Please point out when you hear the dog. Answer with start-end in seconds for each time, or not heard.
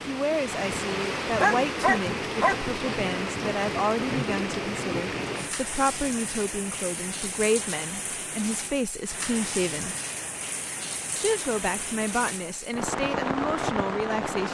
1.4-2.6.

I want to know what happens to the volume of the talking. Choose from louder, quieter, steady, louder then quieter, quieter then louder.
steady.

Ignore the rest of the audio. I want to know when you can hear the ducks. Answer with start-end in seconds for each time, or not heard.
not heard.